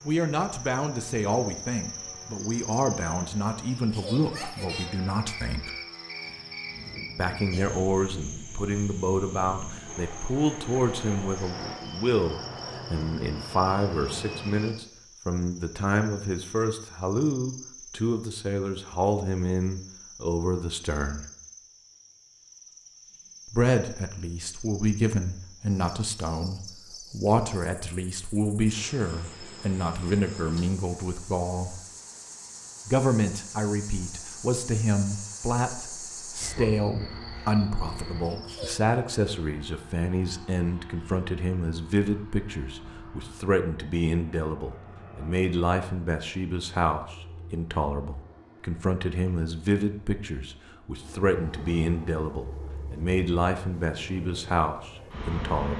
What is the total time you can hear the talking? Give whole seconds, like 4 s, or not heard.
51 s.